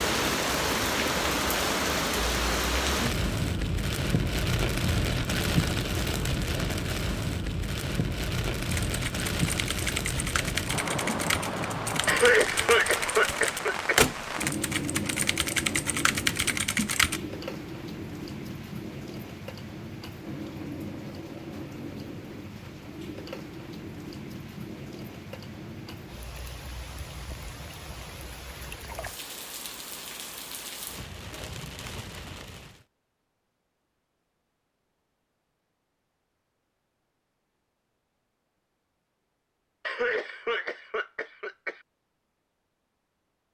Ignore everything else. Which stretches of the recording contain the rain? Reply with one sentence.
You can hear the rain from 0.0 to 32.9 s.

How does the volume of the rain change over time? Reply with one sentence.
The loudness of the rain goes down.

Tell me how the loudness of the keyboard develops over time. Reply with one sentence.
The volume of the keyboard goes up.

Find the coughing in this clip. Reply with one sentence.
You can hear the coughing from 12.1 to 14.0 s and from 39.9 to 41.8 s.